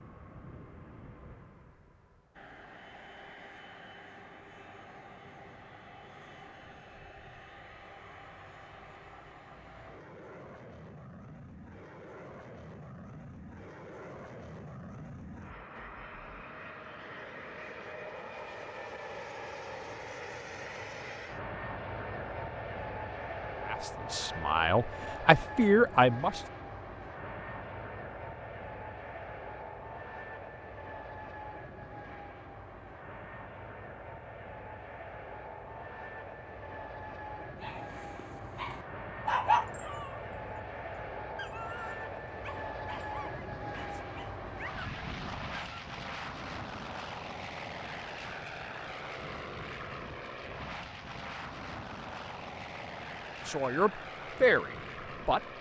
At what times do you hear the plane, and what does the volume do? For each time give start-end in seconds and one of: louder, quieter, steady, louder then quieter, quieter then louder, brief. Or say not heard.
0.0-55.5 louder.